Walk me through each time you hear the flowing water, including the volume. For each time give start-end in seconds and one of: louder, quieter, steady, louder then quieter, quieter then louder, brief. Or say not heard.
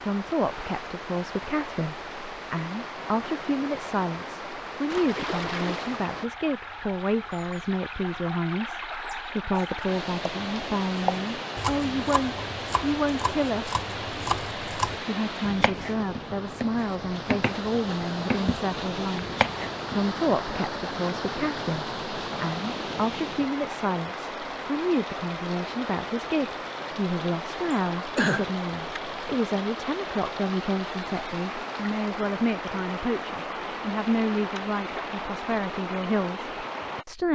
0.0-37.0 steady.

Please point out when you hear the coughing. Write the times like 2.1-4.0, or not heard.
27.7-28.5.